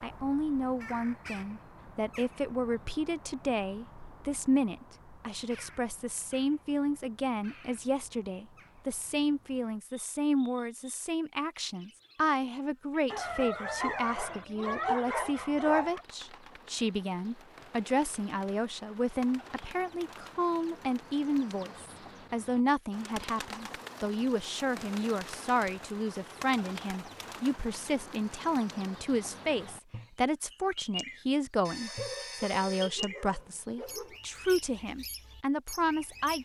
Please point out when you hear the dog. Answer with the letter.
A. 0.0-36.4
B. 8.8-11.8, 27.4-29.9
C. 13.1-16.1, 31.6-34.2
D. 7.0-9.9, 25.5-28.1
C.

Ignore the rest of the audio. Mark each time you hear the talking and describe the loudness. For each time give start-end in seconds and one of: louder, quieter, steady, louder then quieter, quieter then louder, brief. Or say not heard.
0.0-36.4 steady.